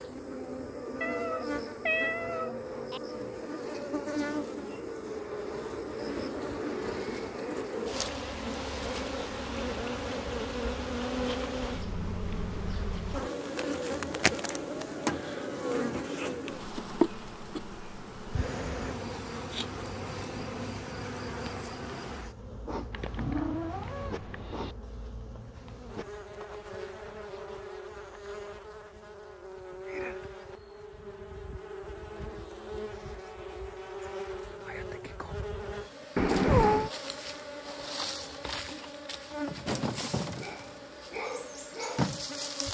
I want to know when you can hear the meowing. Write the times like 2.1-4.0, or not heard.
1.0-3.0, 22.9-24.8, 36.1-36.9.